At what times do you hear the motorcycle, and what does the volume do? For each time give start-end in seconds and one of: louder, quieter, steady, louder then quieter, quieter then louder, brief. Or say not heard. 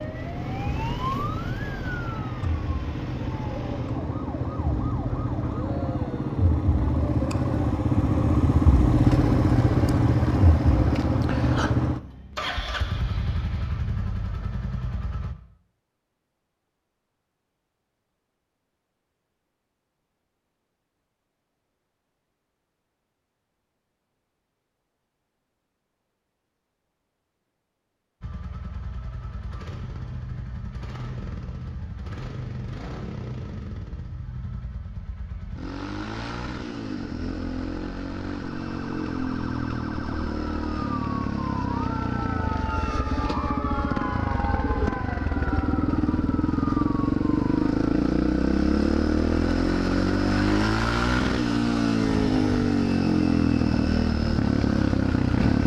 0.0-15.3 louder then quieter
28.2-55.6 louder.